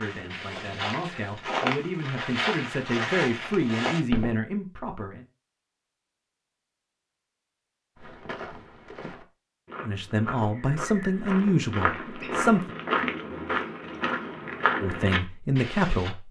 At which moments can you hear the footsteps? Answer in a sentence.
You can hear the footsteps from 0.0 to 4.3 s and from 8.0 to 16.1 s.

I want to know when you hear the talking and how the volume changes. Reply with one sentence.
The talking can be heard from 0.0 to 5.2 s, getting louder; briefly from 9.8 to 12.8 s; and briefly from 14.8 to 16.2 s.